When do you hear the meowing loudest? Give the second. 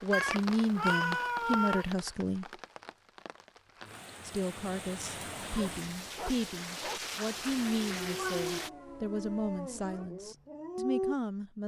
1 s.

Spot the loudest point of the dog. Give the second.
11 s.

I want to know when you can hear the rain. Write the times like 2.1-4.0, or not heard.
0.0-8.7.